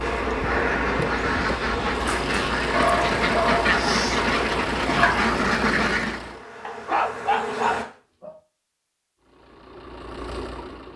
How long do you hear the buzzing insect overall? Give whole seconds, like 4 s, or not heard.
8 s.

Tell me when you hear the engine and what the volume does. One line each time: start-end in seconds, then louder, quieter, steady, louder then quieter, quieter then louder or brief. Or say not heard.
0.0-6.5 steady
9.2-10.9 brief.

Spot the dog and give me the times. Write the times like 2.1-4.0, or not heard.
2.0-3.6, 6.7-8.3.